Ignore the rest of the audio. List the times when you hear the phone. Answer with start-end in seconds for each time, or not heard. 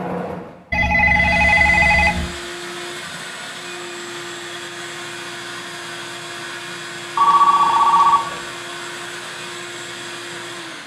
0.7-2.4, 7.2-8.4.